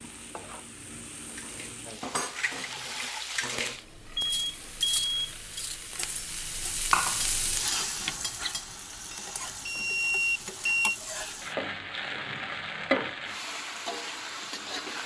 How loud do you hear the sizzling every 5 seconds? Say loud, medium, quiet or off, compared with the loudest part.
medium, loud, loud.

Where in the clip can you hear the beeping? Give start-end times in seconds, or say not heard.
4.2-5.6, 9.7-10.9.